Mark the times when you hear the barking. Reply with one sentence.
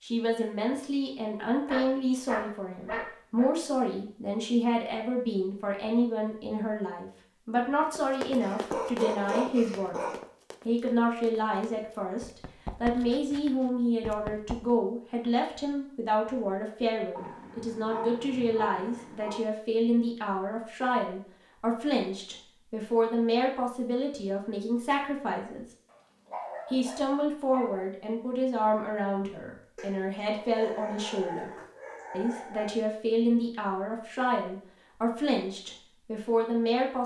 The barking can be heard from 1.6 to 3.5 s, from 8.4 to 10.2 s, from 17.1 to 19.4 s, from 25.9 to 27.9 s and from 29.8 to 32.8 s.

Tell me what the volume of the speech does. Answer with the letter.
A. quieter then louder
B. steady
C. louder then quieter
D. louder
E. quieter
B.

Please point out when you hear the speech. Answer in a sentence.
The speech can be heard from 0.0 to 10.1 s, from 10.7 to 25.6 s, from 26.7 to 31.5 s and from 32.1 to 37.0 s.